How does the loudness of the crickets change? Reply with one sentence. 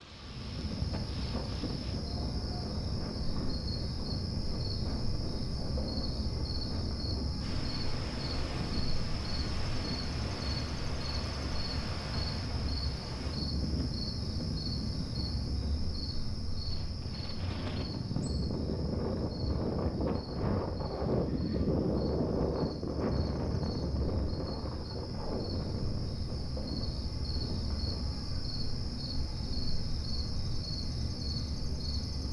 The volume of the crickets goes down, then up.